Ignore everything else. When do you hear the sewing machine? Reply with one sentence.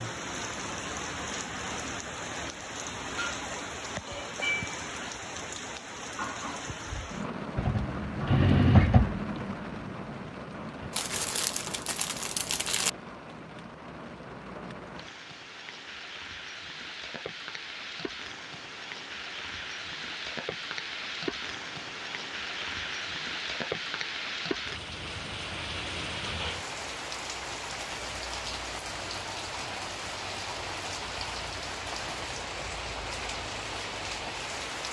The sewing machine can be heard from 7.5 to 10.9 s.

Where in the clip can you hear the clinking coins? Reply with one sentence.
You can't hear the clinking coins here.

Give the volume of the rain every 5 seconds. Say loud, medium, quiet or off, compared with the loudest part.
loud, loud, medium, medium, loud, loud, loud.